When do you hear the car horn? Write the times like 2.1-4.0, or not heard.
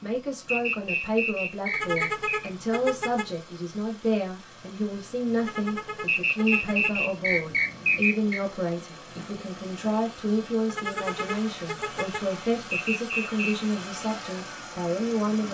1.7-3.4, 5.3-7.0, 10.7-12.3.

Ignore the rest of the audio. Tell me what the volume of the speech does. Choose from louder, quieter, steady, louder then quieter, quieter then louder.
steady.